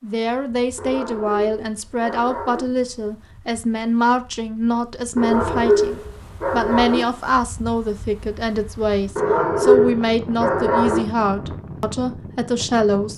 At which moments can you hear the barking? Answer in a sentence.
You can hear the barking from 0.8 to 2.6 s, from 5.2 to 7.0 s and from 9.2 to 11.1 s.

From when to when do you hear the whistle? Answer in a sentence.
The whistle can't be heard in this clip.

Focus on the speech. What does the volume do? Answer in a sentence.
The loudness of the speech stays about the same.